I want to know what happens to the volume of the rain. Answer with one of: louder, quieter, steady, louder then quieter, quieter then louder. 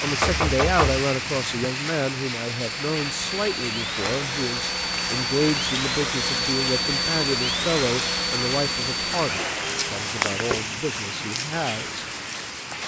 steady.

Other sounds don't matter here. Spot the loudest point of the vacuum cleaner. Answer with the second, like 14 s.
7 s.